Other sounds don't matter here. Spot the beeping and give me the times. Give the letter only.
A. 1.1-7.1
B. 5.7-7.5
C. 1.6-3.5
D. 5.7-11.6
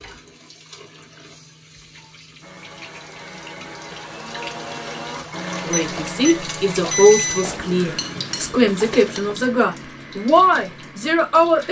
B.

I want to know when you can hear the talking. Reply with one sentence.
The talking can be heard from 5.7 to 11.6 s.